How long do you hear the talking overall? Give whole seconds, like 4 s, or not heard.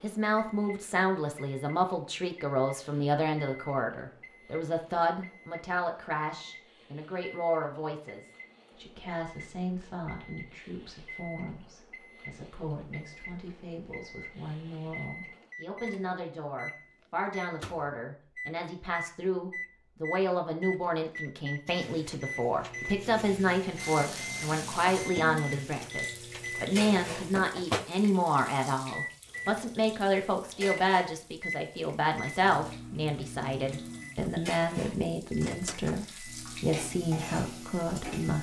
38 s.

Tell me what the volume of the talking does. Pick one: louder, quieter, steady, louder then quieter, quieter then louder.
quieter then louder.